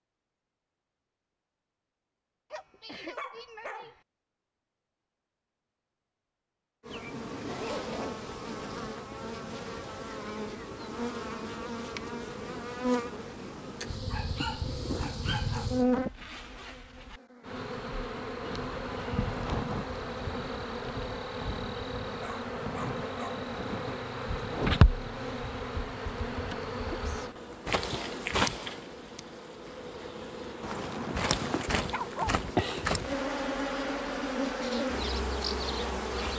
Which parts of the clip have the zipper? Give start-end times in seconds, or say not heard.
7.5-8.8, 15.2-17.2, 30.6-31.7.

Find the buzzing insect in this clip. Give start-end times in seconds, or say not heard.
6.8-36.3.